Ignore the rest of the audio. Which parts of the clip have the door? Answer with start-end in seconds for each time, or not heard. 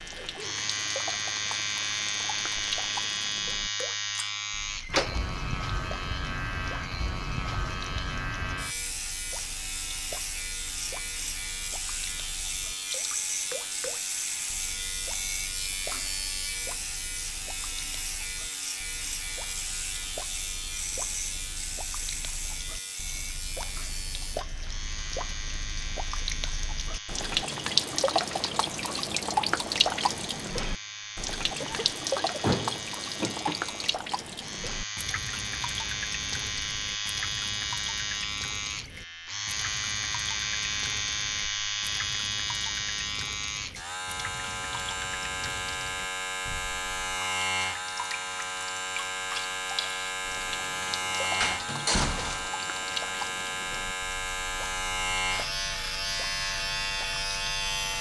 4.8-5.2, 32.4-33.5, 51.4-52.5.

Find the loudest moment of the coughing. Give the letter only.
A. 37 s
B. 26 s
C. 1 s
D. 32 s
D.